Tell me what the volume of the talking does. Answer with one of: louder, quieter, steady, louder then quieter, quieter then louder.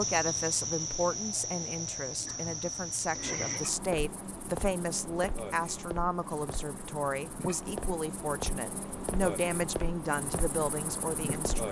steady.